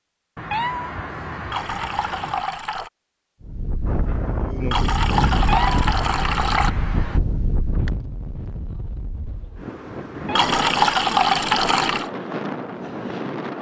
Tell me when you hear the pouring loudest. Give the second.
11 s.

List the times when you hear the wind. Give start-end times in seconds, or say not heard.
3.4-13.5.